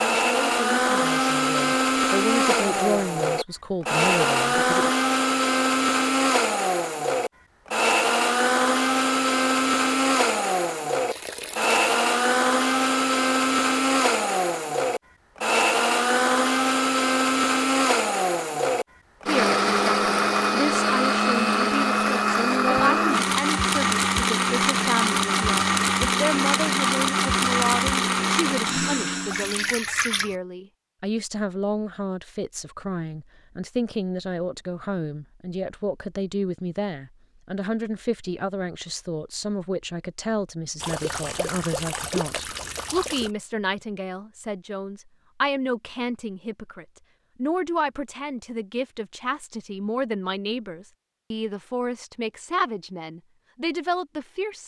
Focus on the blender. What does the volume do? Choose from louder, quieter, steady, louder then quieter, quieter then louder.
steady.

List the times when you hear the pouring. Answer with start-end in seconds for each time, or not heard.
11.1-11.8, 29.2-30.4, 40.8-43.3.